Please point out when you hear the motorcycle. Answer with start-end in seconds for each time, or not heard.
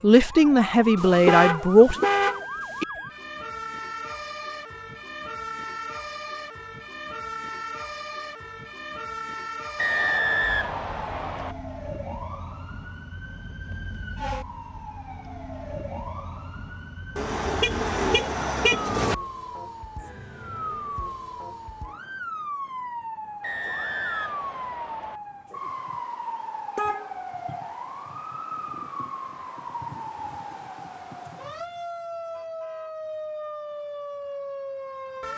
not heard.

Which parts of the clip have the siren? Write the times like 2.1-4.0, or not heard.
0.0-35.3.